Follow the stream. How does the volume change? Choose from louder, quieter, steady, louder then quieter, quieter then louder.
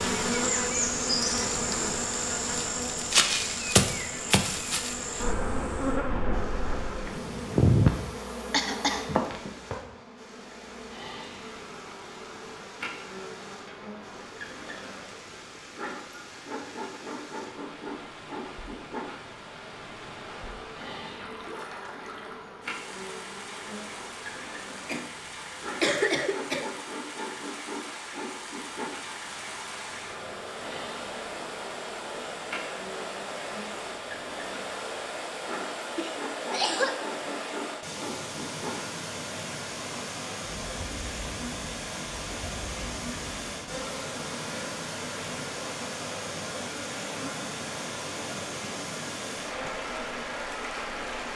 louder.